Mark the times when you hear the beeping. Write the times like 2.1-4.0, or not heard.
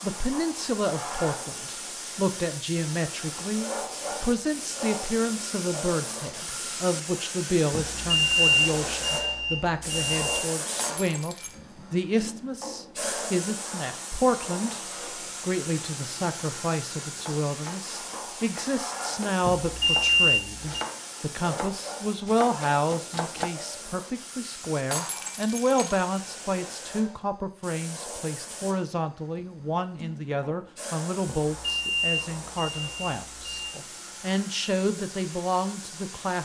7.7-10.4, 19.4-20.9, 31.4-33.8.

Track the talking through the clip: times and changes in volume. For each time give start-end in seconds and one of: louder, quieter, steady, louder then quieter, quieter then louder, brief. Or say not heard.
0.0-36.3 steady.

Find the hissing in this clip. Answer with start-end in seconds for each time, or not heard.
0.0-36.3.